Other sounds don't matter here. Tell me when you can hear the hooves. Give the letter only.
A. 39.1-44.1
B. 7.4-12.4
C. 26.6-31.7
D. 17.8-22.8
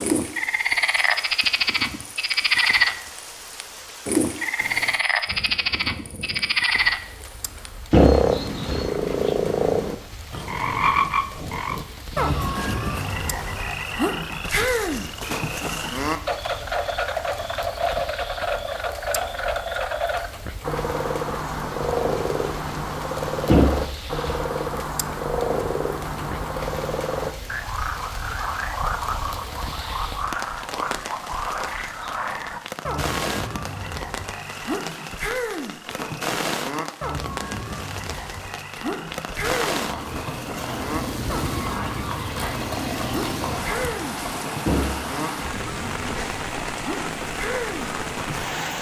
A.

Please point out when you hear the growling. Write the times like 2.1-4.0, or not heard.
not heard.